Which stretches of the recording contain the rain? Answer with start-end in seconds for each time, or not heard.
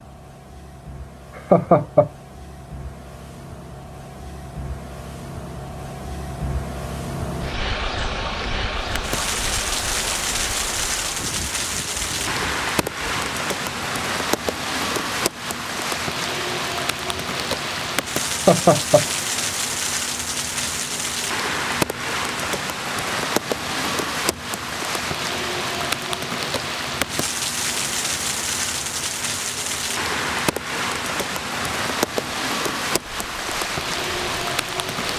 8.8-35.1.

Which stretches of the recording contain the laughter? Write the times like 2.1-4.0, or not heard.
1.4-2.1, 18.3-19.1.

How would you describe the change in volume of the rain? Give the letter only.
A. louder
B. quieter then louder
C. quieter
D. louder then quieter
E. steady
E.